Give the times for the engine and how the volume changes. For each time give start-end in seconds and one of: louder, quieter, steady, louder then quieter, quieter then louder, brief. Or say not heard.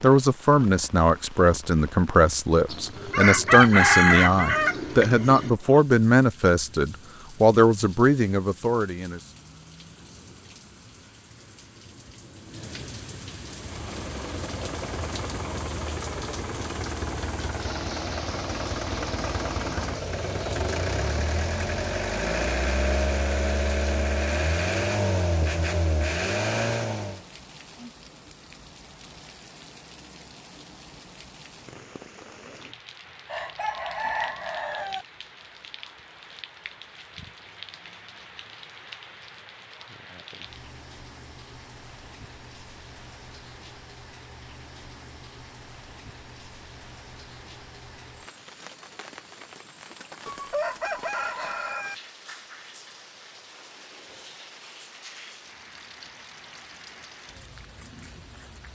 13.4-27.2 louder.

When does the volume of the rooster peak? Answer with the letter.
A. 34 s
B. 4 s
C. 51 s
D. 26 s
B.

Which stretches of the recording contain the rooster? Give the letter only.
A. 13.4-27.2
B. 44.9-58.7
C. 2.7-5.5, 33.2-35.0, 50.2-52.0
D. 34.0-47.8
C.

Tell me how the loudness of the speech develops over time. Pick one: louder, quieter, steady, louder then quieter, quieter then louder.
steady.